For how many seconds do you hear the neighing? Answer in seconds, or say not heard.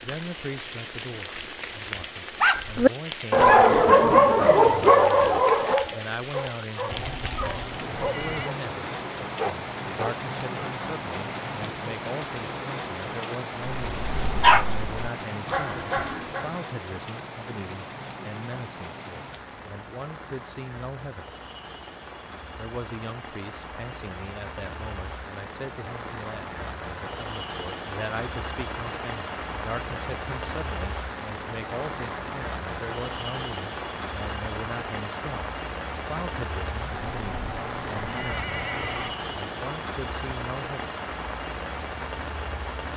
4 s.